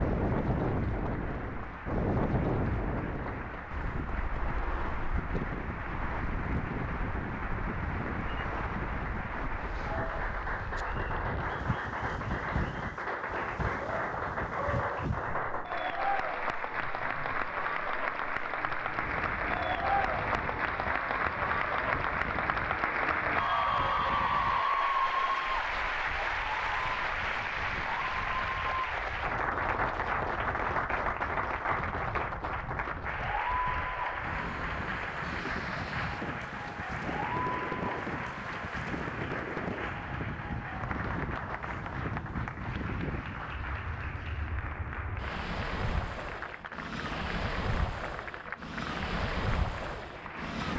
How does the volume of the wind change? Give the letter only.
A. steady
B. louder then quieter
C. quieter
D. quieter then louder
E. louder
D.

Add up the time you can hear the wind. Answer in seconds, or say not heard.
51 s.